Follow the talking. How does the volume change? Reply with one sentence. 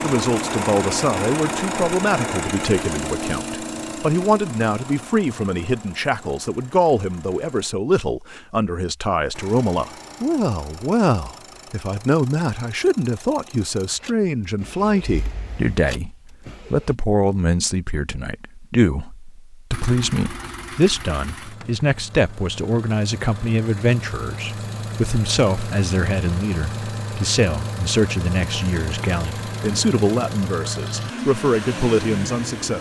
The loudness of the talking stays about the same.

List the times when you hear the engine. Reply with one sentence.
The engine can be heard from 0.0 to 7.7 s, from 9.3 to 16.9 s and from 19.7 to 32.7 s.